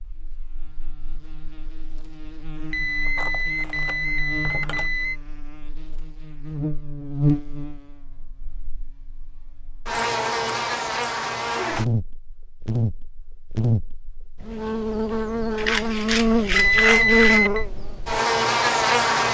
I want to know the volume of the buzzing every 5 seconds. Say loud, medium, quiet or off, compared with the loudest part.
quiet, medium, medium, loud.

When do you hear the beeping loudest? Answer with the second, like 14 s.
17 s.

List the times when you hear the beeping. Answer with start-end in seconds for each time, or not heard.
2.7-5.2, 16.6-17.6.